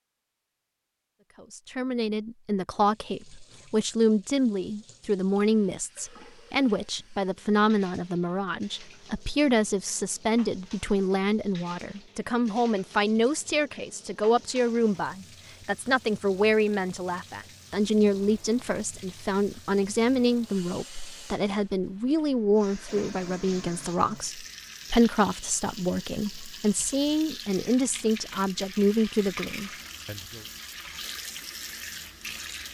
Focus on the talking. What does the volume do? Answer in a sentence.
The volume of the talking stays about the same.